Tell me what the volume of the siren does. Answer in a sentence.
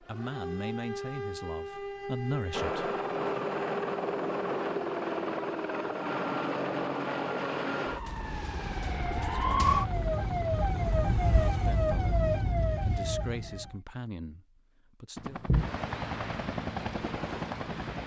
The volume of the siren goes up.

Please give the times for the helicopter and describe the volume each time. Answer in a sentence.
The helicopter can be heard from 2.5 to 11.4 s, getting quieter; and briefly from 15.2 to 18.0 s.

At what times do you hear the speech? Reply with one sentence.
The speech can be heard from 0.0 to 3.5 s, from 9.2 to 9.6 s and from 11.5 to 15.4 s.